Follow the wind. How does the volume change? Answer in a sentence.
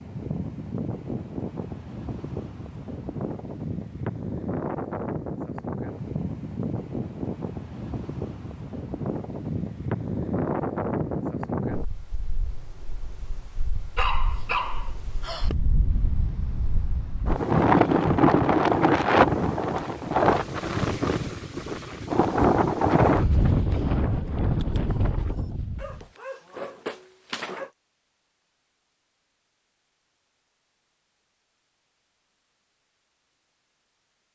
The loudness of the wind goes up.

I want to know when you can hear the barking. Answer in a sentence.
You can hear the barking from 13.9 to 15.5 s and from 25.8 to 27.7 s.